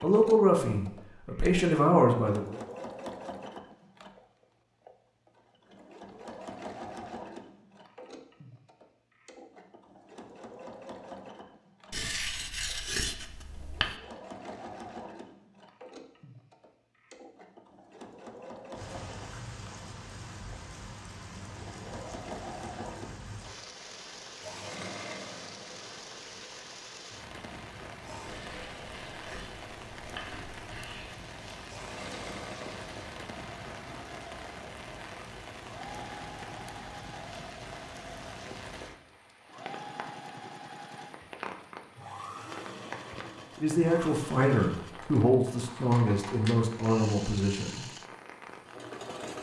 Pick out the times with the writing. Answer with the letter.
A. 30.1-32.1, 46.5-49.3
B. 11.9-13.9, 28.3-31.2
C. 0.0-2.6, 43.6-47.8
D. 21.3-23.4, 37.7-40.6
B.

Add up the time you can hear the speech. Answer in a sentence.
You can hear the speech for 7 seconds altogether.